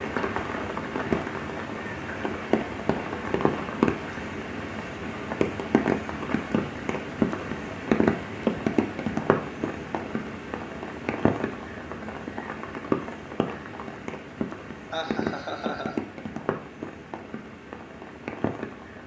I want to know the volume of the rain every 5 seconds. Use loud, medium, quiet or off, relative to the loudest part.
loud, loud, medium, medium.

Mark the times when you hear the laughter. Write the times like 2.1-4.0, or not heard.
14.9-16.0.